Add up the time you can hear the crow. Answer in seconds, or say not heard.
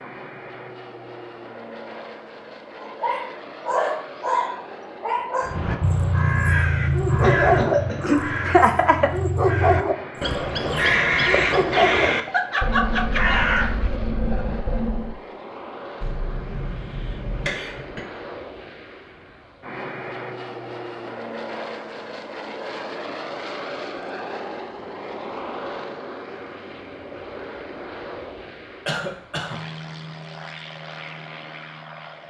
10 s.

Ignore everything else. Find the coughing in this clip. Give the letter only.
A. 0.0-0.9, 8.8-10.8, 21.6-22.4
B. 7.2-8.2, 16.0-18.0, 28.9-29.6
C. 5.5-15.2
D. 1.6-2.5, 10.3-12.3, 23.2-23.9
B.